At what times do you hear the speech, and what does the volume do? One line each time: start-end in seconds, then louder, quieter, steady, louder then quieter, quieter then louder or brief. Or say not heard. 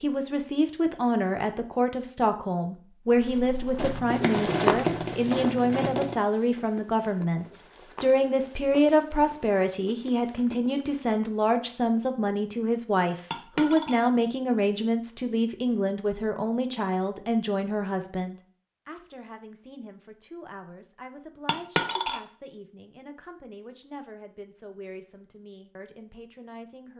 0.0-26.9 quieter.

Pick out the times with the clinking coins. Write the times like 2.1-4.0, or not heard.
3.8-6.2, 13.3-14.0, 21.4-22.2.